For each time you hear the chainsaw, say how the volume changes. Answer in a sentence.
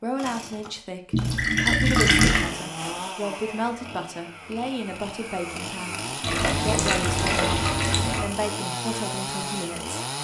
You can hear the chainsaw from 0.1 to 10.1 s, getting louder.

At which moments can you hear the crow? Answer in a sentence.
The crow can't be heard in this clip.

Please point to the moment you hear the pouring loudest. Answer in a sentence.
The volume of the pouring peaks at 2 seconds.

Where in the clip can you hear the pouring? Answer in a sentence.
You can hear the pouring from 1.1 to 2.5 s and from 6.2 to 8.2 s.